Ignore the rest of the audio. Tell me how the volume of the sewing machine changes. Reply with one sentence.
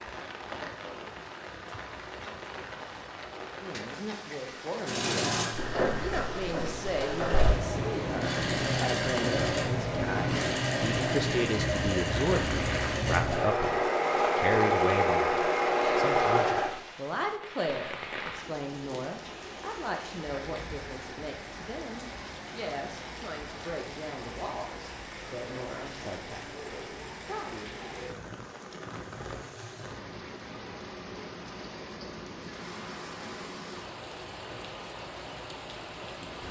The loudness of the sewing machine goes up.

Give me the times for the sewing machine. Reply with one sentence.
You can hear the sewing machine from 4.8 to 16.7 s.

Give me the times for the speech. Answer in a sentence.
The speech can be heard from 3.3 to 27.9 s.